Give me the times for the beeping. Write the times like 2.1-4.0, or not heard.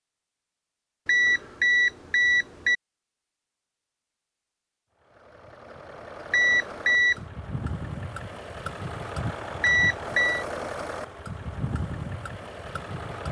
1.1-2.8, 6.3-7.2, 9.6-10.4.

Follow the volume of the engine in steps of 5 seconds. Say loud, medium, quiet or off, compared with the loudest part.
off, loud, loud.